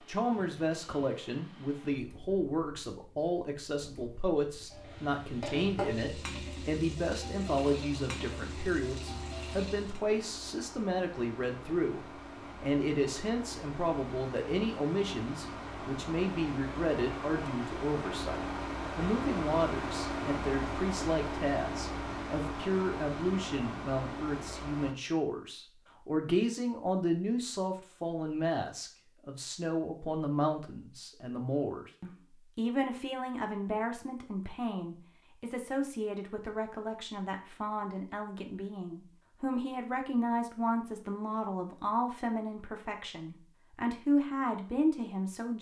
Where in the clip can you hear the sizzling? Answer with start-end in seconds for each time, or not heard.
4.7-10.0.